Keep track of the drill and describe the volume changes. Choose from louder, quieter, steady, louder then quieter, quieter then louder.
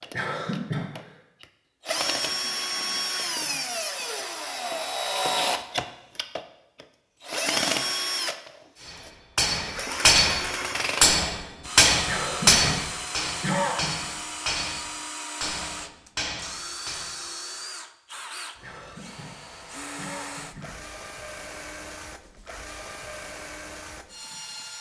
quieter.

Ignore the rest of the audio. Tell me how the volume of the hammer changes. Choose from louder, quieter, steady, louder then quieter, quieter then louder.
quieter.